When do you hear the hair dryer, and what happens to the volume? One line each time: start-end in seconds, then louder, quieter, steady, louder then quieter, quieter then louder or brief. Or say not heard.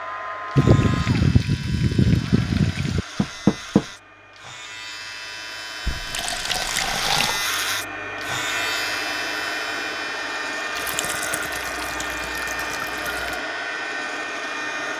0.0-14.9 quieter then louder.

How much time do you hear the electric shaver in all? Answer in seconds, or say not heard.
15 s.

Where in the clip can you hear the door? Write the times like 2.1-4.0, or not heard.
3.1-3.9.